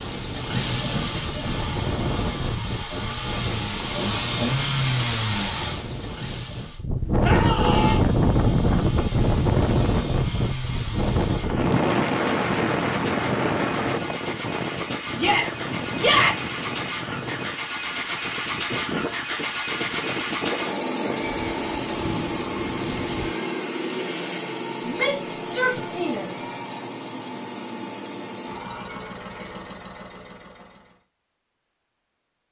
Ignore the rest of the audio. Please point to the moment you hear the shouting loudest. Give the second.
16 s.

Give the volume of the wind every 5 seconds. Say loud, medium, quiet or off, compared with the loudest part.
medium, loud, loud, medium, medium, off, off.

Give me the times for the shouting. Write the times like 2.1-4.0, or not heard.
7.2-8.0, 15.2-16.6, 24.9-26.4.